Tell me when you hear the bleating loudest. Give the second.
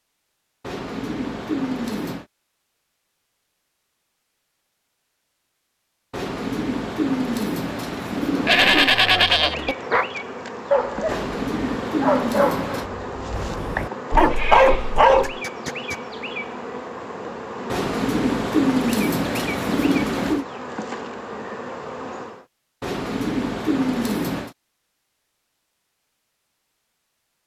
9 s.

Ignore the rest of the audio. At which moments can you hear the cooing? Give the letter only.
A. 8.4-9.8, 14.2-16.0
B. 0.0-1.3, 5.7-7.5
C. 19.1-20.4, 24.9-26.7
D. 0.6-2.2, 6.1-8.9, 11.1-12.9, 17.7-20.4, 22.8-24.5
D.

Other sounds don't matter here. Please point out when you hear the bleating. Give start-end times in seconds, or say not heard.
8.4-9.8, 14.2-16.0.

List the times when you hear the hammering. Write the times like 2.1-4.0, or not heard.
not heard.